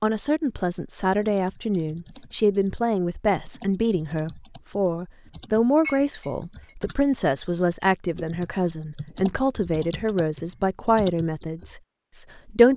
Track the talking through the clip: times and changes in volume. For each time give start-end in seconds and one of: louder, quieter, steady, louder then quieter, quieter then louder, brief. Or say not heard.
0.0-12.7 steady.